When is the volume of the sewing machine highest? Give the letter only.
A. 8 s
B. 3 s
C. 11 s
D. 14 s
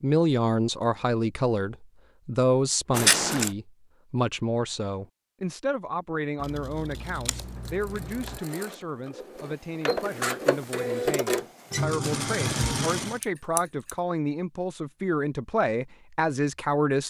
C.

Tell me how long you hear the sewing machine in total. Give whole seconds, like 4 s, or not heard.
6 s.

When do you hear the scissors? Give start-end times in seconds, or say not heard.
2.9-3.5, 6.4-8.4, 13.2-13.9.